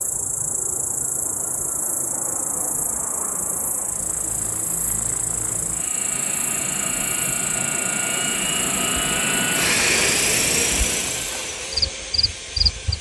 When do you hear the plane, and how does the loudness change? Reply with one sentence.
The plane can be heard from 0.0 to 12.9 s, getting louder.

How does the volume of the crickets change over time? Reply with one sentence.
The loudness of the crickets stays about the same.